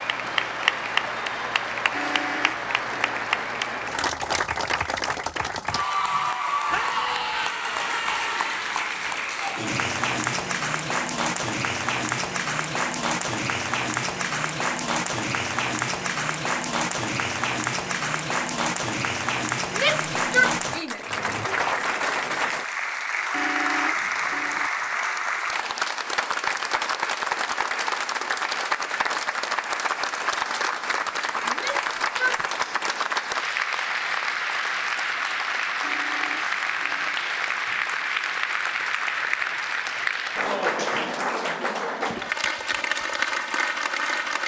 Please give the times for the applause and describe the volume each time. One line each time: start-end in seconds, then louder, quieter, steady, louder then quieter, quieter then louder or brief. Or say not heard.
0.0-44.4 steady.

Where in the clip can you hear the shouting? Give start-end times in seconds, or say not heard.
6.7-7.5, 19.8-21.0, 31.4-32.5.